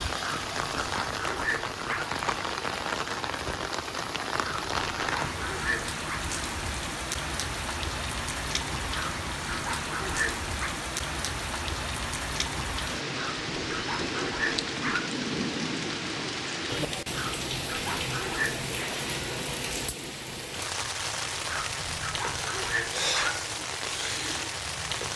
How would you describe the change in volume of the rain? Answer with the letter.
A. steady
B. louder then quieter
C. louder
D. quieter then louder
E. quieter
A.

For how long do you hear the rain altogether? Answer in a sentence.
The rain can be heard for 25 seconds in total.